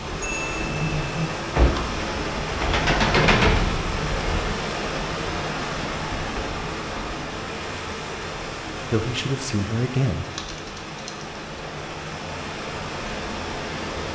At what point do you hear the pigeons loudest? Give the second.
3 s.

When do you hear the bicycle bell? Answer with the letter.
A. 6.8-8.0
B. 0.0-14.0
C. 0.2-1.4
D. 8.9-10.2
C.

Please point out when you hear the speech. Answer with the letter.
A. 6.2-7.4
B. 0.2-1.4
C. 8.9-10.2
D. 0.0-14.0
C.